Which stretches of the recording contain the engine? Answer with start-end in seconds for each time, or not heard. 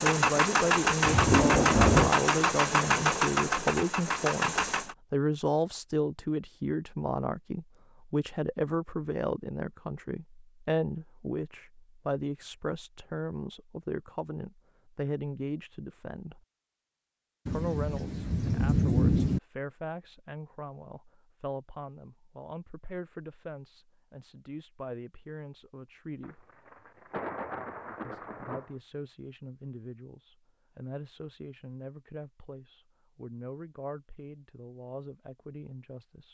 0.0-5.0.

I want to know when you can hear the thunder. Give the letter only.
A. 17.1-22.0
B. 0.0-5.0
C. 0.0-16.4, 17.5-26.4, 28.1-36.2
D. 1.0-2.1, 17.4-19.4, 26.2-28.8
D.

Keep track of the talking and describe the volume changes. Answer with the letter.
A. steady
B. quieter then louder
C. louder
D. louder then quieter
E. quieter
E.